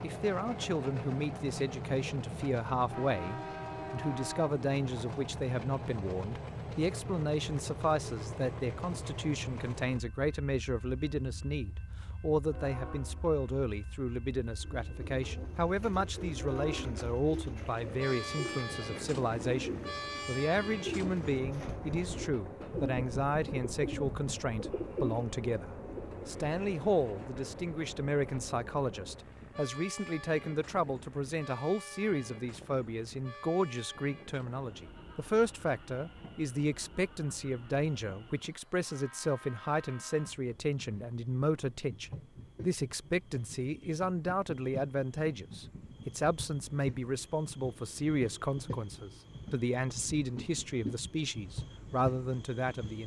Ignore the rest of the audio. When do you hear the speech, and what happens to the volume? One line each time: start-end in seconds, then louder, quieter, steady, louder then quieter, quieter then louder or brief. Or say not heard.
0.0-53.0 steady.